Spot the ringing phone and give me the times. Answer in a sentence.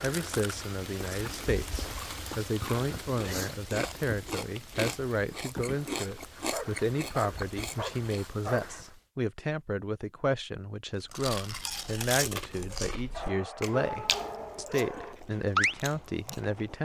The ringing phone can't be heard in this clip.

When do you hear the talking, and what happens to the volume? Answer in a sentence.
The talking can be heard from 0.0 to 16.8 s, at a steady volume.